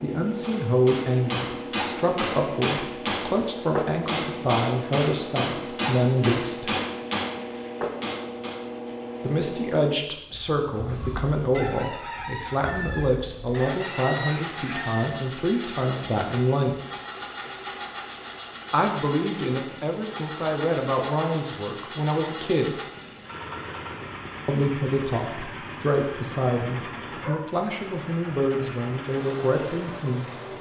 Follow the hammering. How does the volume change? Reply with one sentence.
The volume of the hammering stays about the same.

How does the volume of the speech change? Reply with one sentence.
The loudness of the speech stays about the same.